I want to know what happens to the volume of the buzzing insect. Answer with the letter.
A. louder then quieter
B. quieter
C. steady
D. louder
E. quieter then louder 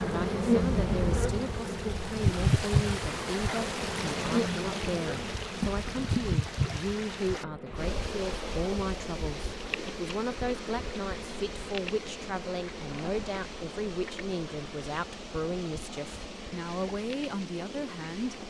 B.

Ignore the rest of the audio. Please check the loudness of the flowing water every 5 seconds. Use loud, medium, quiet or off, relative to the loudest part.
loud, loud, medium, medium.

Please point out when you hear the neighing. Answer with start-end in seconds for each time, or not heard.
not heard.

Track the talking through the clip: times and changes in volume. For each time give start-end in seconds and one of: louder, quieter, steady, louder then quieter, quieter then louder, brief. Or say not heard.
0.1-18.4 steady.